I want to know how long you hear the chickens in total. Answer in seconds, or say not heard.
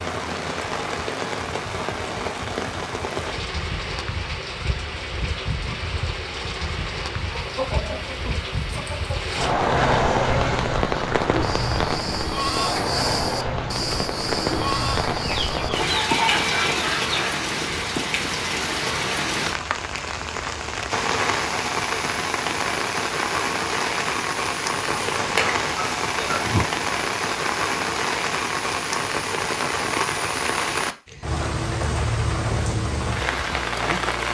6 s.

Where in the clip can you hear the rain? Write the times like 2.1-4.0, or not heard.
0.0-34.2.